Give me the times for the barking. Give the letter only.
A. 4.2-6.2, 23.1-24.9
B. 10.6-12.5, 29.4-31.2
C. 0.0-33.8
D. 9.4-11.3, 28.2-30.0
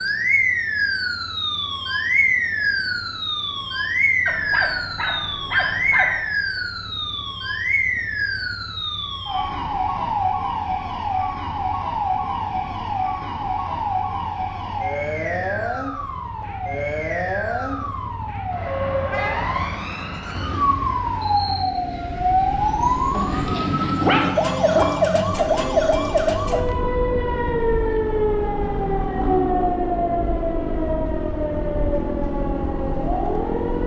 A.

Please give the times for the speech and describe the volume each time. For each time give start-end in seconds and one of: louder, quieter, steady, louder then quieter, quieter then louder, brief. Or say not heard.
not heard.